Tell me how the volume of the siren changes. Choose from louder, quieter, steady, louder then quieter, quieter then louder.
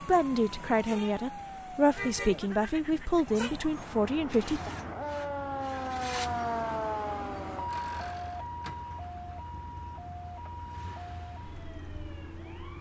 louder then quieter.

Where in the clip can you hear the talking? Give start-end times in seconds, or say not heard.
0.1-4.7.